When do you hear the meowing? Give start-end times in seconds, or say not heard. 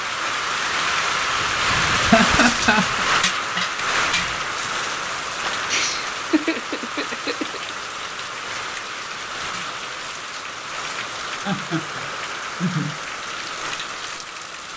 not heard.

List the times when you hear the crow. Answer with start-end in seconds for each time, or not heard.
not heard.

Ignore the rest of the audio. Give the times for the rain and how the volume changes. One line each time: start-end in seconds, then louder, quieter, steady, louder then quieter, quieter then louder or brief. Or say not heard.
0.0-14.7 quieter.